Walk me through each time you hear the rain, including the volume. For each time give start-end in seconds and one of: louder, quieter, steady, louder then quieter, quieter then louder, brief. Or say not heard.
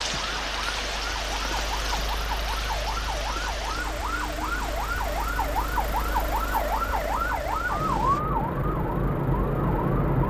0.0-8.2 quieter.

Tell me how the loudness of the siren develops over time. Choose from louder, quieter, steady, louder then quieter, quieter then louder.
louder.